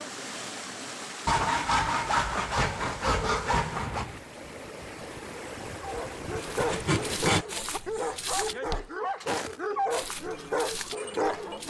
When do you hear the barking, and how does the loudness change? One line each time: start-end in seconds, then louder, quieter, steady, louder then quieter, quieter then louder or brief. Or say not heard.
5.8-11.6 steady.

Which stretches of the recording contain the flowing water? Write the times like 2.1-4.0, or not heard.
0.0-7.2.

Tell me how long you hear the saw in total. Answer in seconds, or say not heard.
5 s.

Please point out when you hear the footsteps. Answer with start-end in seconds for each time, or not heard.
6.3-11.6.